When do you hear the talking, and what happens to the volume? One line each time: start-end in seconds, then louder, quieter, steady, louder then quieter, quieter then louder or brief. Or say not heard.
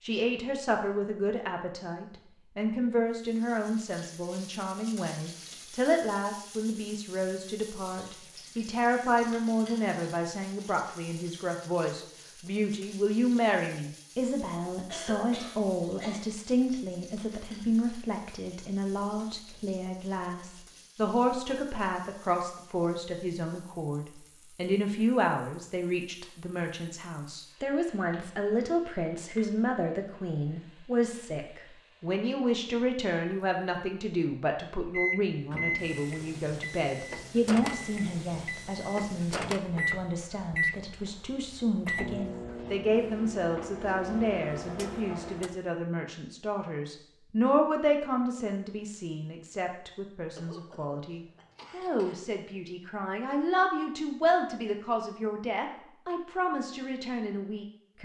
0.0-58.0 steady.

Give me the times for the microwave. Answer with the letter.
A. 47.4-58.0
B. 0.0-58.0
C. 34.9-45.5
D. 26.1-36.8
C.